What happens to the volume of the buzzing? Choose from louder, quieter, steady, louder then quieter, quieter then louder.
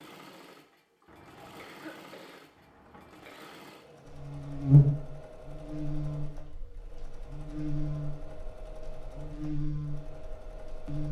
quieter then louder.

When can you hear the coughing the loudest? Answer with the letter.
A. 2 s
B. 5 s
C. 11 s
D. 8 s
A.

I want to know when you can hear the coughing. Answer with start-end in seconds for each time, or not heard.
1.1-3.6.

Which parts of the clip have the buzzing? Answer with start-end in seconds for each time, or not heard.
4.0-11.0.